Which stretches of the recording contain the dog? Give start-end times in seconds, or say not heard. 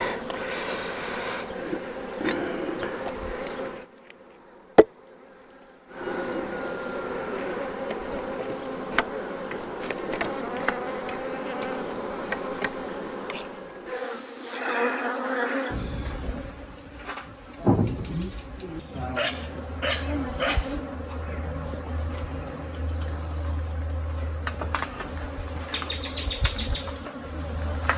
19.1-20.8.